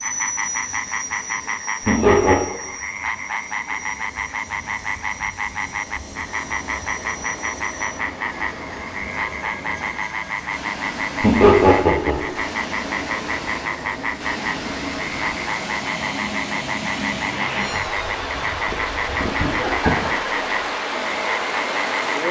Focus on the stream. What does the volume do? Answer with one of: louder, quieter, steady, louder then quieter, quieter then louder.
louder.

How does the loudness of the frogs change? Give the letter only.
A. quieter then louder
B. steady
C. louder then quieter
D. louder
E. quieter
B.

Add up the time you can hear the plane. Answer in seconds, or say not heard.
20 s.